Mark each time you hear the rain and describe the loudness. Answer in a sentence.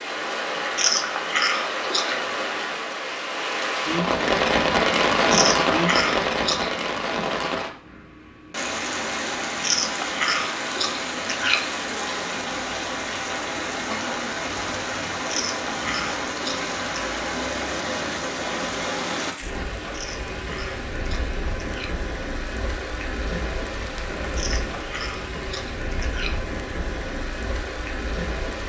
You can hear the rain from 0.0 to 28.6 s, getting quieter.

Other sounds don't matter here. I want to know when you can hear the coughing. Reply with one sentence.
You can't hear the coughing here.